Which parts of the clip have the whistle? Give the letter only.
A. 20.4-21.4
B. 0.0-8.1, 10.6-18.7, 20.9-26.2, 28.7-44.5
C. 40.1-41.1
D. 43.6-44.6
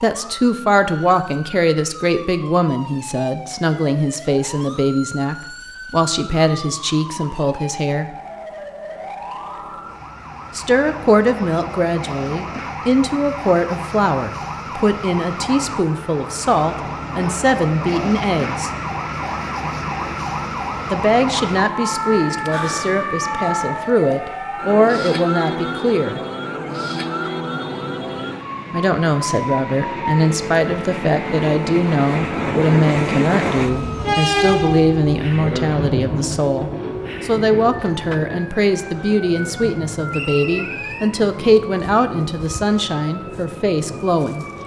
C.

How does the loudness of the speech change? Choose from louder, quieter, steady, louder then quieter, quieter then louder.
steady.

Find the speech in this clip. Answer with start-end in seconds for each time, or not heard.
0.0-8.1, 10.6-18.7, 20.9-26.2, 28.7-44.5.